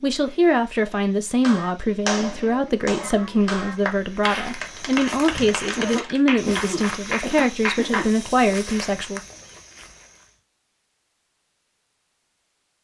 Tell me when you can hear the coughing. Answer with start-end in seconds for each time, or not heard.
5.8-8.1.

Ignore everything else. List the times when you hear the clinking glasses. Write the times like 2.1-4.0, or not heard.
not heard.